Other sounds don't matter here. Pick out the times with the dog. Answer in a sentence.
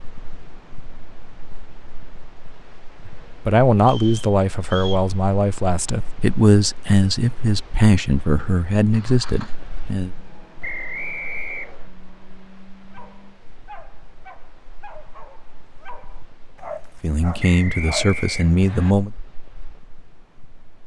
You can hear the dog from 12.9 to 18.2 s.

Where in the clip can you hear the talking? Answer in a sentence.
The talking can be heard from 3.4 to 10.1 s and from 17.0 to 19.1 s.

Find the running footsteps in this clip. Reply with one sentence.
The running footsteps can't be heard in this clip.